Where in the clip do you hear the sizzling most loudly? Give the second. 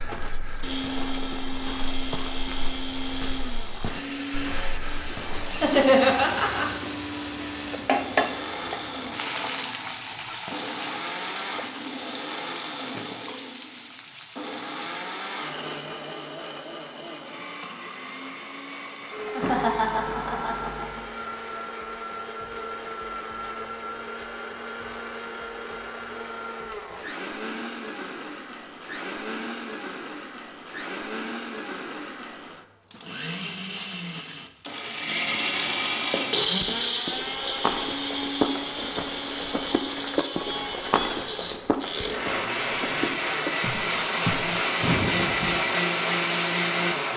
8 s.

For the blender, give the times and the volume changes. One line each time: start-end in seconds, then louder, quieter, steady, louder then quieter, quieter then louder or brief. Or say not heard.
0.0-47.1 louder.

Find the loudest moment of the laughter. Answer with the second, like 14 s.
6 s.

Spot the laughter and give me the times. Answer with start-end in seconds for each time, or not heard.
5.5-6.7, 19.4-21.0, 44.8-45.5.